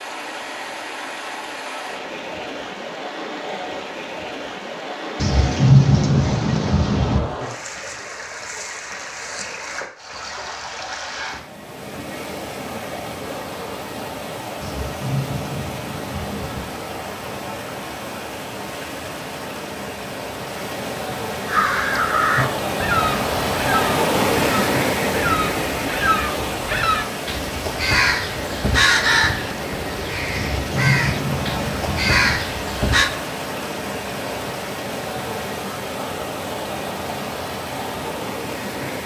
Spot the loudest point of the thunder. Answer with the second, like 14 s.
6 s.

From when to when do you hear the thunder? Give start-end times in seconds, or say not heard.
5.2-7.2, 14.6-16.6, 30.3-32.4.